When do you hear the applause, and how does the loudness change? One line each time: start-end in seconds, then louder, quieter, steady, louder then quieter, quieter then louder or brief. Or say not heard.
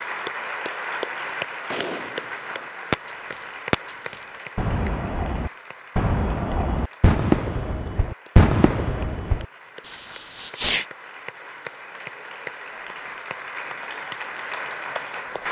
0.0-15.4 quieter then louder.